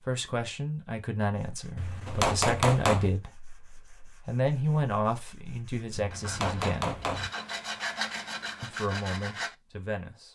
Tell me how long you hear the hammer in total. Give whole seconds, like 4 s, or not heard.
3 s.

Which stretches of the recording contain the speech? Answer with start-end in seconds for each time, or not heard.
0.0-7.0, 8.6-10.2.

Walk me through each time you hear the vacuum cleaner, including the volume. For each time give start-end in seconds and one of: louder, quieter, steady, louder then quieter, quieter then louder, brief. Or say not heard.
not heard.